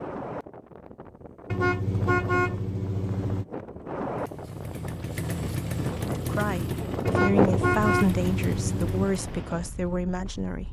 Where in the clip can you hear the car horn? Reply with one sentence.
You can hear the car horn from 1.5 to 3.5 s and from 7.0 to 9.1 s.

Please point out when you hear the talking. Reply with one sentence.
You can hear the talking from 6.2 to 10.6 s.